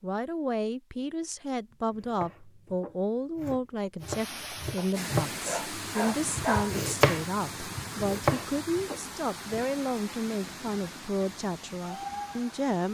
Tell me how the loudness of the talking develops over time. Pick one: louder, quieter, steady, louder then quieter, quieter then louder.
steady.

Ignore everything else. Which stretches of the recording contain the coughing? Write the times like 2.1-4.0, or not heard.
not heard.